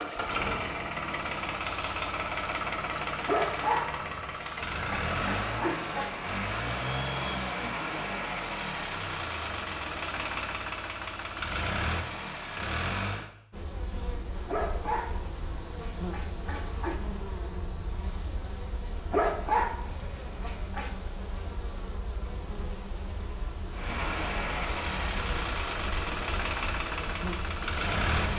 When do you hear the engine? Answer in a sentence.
You can hear the engine from 0.0 to 13.3 s and from 23.7 to 28.3 s.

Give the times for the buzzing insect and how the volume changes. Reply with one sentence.
You can hear the buzzing insect from 13.5 to 28.3 s, at a steady volume.